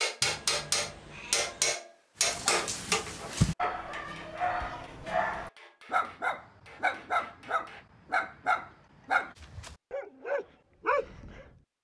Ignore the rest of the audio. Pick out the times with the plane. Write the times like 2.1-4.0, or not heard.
not heard.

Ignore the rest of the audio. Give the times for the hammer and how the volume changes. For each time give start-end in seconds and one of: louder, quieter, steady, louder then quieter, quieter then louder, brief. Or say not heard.
0.0-7.8 quieter.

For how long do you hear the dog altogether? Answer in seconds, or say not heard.
9 s.